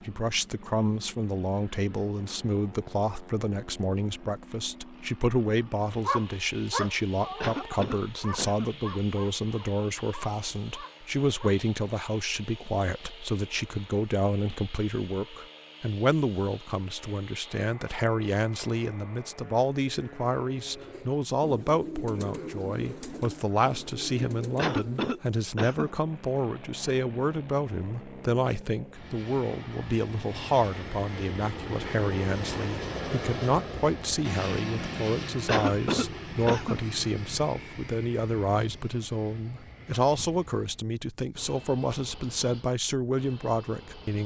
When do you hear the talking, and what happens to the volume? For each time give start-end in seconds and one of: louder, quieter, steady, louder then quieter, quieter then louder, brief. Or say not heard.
0.1-44.2 steady.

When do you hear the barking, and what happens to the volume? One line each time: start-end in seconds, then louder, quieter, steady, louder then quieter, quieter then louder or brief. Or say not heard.
6.0-11.6 quieter.